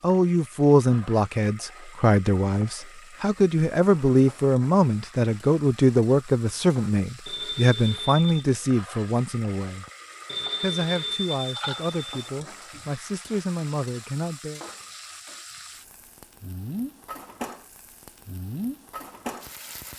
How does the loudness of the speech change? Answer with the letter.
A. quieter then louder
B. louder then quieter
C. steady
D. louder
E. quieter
E.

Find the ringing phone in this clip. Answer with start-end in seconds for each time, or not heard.
7.2-8.4, 10.2-12.3.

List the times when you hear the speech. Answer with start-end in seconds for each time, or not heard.
0.0-9.8, 10.6-14.6.